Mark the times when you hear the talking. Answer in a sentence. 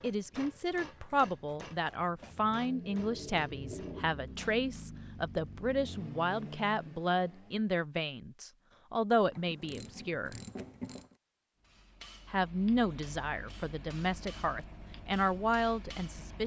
You can hear the talking from 0.0 to 10.4 s and from 12.3 to 16.4 s.